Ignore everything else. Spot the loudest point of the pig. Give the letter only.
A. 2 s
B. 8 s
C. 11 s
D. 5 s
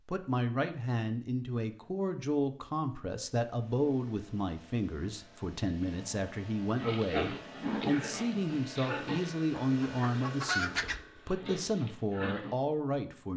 B.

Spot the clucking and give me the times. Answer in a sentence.
You can hear the clucking from 9.5 to 11.0 s.